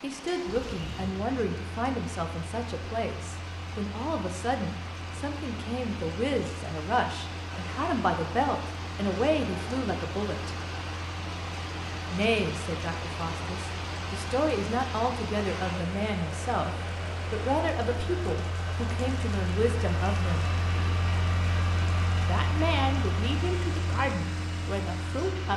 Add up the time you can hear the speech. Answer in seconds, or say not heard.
22 s.